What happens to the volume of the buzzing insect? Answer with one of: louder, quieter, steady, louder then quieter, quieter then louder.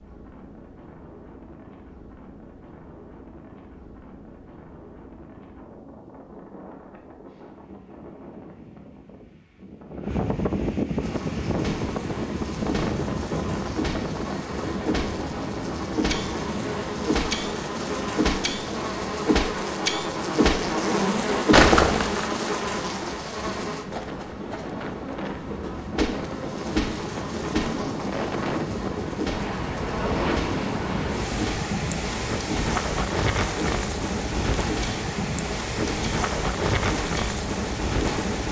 louder then quieter.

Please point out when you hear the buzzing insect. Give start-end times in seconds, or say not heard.
11.0-38.2.